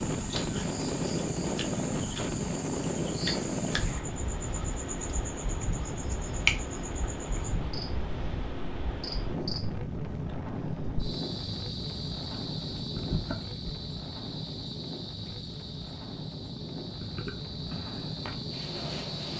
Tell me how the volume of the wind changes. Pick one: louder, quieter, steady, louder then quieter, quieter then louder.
quieter.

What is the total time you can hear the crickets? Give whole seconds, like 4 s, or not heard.
19 s.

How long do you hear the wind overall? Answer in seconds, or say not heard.
19 s.